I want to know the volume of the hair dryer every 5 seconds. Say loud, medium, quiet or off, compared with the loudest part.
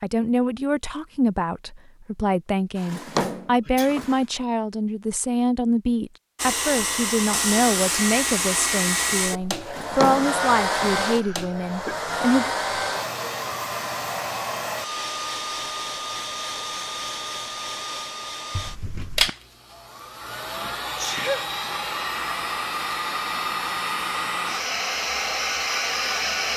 off, loud, loud, medium, loud, loud.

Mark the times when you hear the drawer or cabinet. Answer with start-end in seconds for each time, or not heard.
2.8-4.2, 9.6-11.1, 18.5-19.3.